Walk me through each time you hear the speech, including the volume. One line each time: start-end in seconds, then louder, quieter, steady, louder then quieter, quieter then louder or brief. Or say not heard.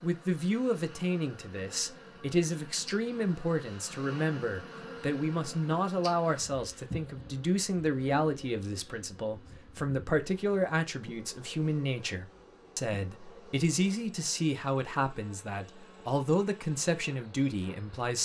0.0-18.2 steady.